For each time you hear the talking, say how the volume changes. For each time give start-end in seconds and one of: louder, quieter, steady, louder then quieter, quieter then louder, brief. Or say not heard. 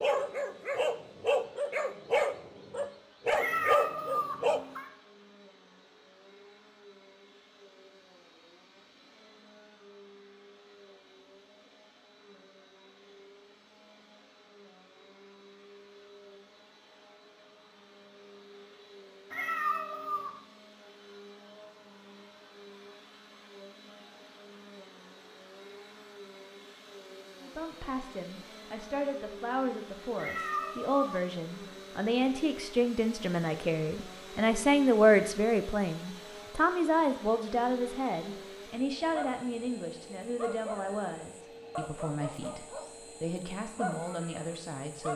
27.4-45.1 louder then quieter.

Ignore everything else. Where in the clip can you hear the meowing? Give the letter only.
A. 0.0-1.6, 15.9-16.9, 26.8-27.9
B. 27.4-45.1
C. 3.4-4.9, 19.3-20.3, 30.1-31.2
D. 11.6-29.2
C.